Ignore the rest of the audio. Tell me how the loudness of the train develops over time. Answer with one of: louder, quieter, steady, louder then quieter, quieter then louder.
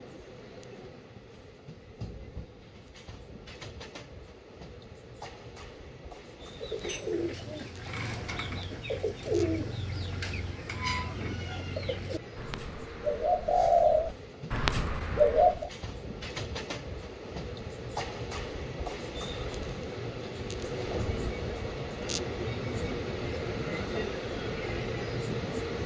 louder.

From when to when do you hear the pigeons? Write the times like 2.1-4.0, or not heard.
6.4-15.7.